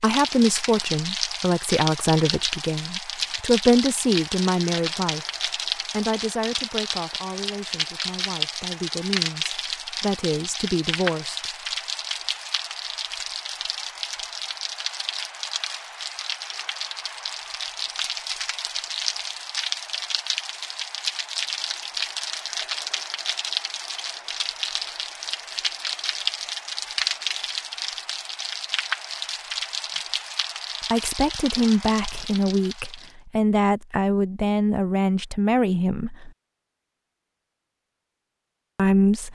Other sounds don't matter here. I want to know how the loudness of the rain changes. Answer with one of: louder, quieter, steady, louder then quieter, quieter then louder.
steady.